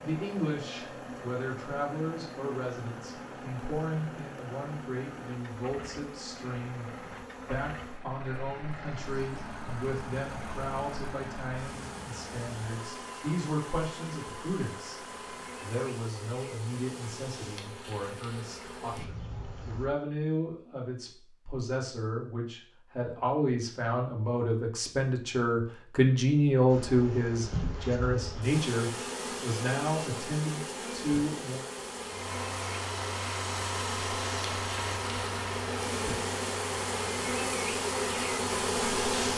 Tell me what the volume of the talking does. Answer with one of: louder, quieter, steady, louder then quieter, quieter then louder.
louder.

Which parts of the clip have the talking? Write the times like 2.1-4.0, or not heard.
0.0-15.0, 15.6-31.6.